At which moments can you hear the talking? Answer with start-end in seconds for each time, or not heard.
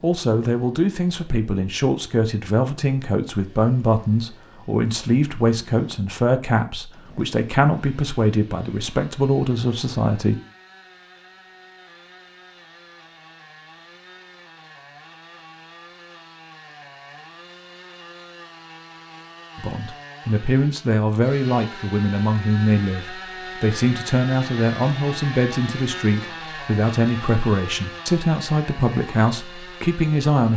0.0-10.3, 19.6-30.5.